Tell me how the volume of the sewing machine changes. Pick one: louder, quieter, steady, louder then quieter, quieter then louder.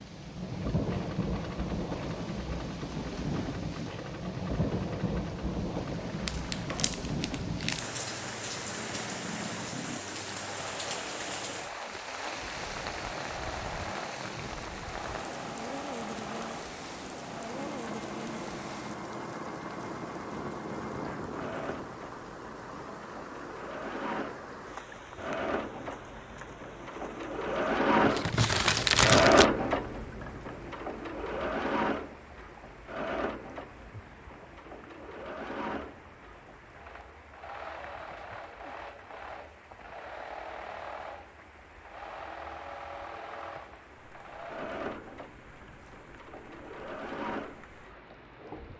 louder then quieter.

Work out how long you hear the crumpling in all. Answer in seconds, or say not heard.
3 s.